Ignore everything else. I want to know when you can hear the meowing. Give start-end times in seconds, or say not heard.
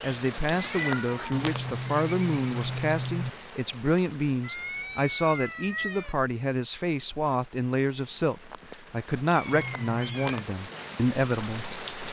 0.6-1.5, 4.4-6.2, 9.3-10.4.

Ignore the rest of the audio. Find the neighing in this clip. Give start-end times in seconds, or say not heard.
1.3-3.3, 9.5-10.3.